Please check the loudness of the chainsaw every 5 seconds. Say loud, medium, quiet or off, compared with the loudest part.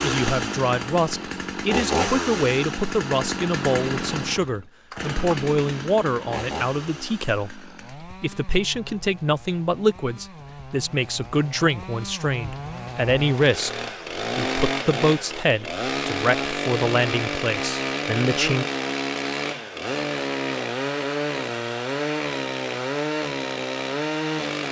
loud, medium, medium, loud, loud.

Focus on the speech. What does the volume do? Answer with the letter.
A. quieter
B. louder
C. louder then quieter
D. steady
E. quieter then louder
D.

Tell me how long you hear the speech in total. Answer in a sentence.
The speech can be heard for 19 seconds in total.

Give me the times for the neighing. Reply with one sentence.
You can't hear the neighing here.